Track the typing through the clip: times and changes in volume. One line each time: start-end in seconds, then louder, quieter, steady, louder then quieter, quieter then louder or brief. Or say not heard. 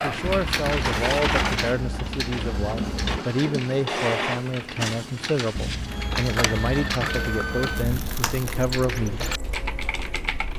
0.0-10.5 quieter then louder.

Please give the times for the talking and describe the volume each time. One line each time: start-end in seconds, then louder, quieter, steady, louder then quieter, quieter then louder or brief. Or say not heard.
0.0-9.3 steady.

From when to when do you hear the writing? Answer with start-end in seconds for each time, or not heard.
0.2-3.2, 5.5-8.2.